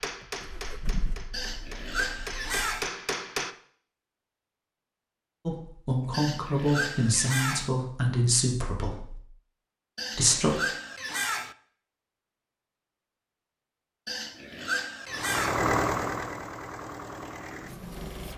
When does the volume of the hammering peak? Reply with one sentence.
The volume of the hammering peaks at 3 seconds.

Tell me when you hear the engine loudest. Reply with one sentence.
The loudest moment of the engine is at 16 seconds.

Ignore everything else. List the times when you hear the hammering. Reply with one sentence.
The hammering can be heard from 0.0 to 3.5 s.